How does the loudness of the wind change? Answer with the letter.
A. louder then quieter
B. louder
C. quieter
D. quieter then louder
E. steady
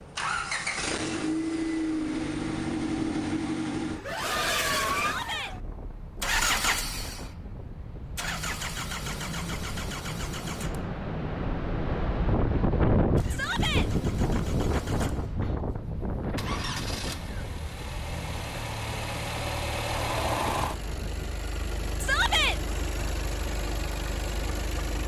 A.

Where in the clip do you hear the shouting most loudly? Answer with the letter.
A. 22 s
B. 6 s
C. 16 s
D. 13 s
A.